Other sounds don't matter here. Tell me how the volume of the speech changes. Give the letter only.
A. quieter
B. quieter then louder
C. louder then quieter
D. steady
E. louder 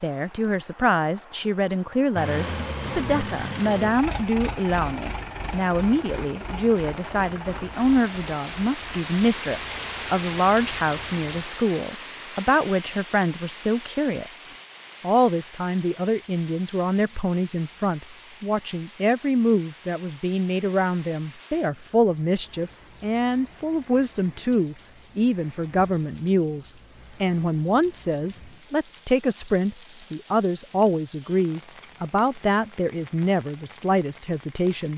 D.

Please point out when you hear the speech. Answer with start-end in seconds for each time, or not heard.
0.0-34.9.